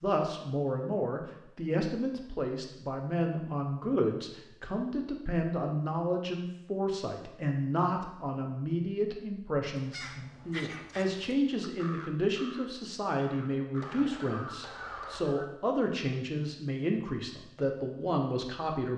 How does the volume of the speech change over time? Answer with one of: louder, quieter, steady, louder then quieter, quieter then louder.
steady.